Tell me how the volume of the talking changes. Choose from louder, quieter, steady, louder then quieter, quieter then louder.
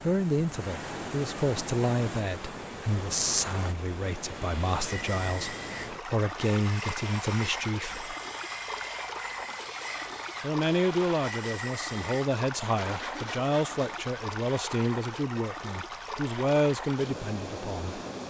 steady.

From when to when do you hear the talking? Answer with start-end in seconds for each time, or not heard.
0.0-8.2, 10.4-18.0.